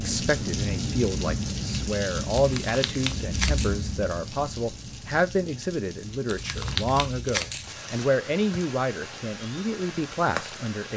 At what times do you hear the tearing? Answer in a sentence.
The tearing can be heard from 2.4 to 3.8 s and from 6.2 to 8.1 s.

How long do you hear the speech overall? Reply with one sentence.
You can hear the speech for 11 seconds altogether.